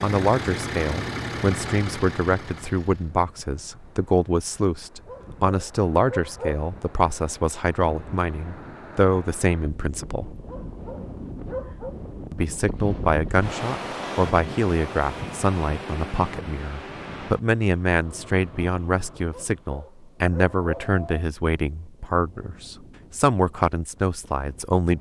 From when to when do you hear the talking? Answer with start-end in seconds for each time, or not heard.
0.0-10.3, 12.3-24.9.